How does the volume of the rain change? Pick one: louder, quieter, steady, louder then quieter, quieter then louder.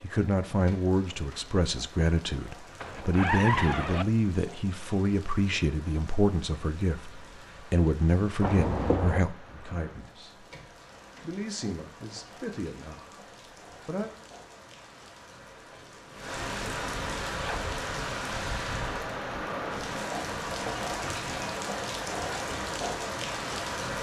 louder.